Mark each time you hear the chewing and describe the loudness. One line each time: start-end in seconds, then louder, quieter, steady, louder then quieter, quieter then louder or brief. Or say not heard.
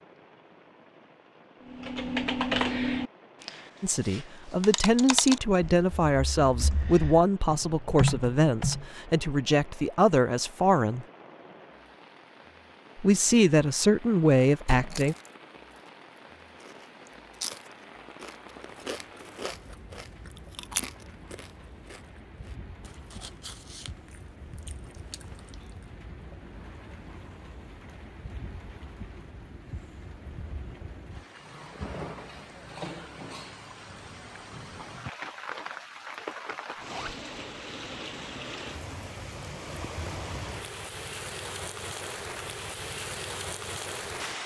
14.9-25.9 louder then quieter.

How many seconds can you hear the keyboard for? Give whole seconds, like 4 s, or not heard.
7 s.